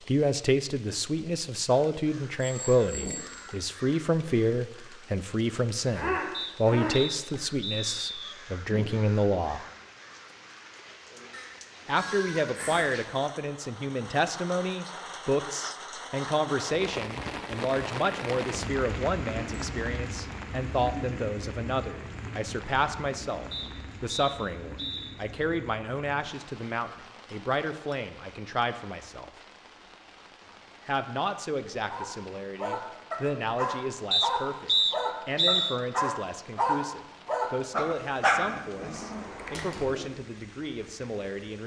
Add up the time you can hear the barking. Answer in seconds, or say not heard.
8 s.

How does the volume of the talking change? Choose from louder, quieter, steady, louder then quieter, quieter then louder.
quieter.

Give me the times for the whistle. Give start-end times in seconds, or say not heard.
6.3-8.3, 23.5-25.1, 34.1-35.8.